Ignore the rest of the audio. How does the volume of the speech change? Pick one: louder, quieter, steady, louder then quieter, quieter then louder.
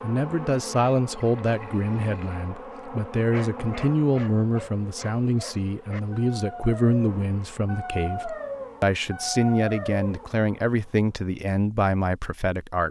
steady.